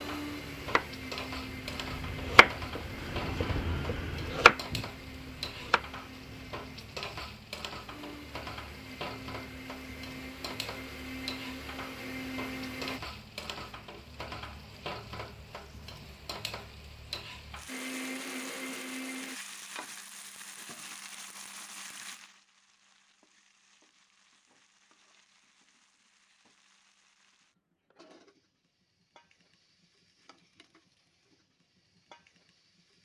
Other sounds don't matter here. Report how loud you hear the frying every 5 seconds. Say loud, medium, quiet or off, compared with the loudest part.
loud, loud, loud, loud, medium, quiet, quiet.